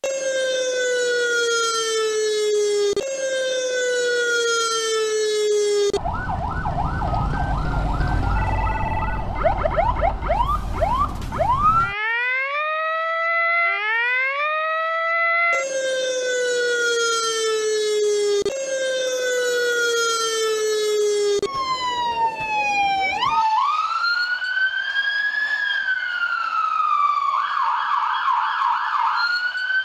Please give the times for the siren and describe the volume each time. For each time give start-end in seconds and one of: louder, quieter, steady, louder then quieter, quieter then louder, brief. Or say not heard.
0.0-29.7 steady.